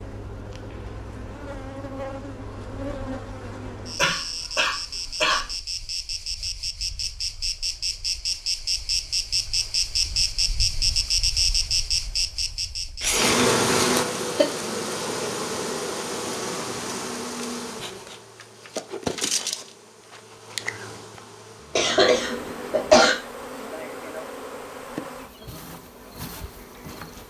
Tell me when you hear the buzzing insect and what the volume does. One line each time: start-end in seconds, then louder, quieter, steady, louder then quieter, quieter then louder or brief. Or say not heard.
0.0-27.2 louder then quieter.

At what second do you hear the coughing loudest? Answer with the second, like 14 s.
23 s.